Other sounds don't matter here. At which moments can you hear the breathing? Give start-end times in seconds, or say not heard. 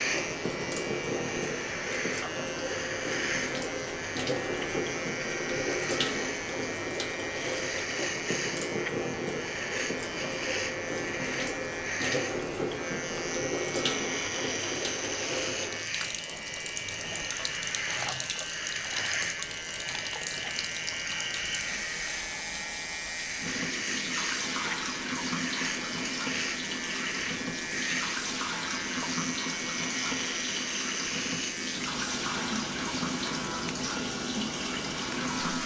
not heard.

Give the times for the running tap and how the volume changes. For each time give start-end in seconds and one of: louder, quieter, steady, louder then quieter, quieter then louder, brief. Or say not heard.
0.0-35.6 steady.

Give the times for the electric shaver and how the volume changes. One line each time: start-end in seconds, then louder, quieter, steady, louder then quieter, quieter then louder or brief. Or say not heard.
0.0-35.6 steady.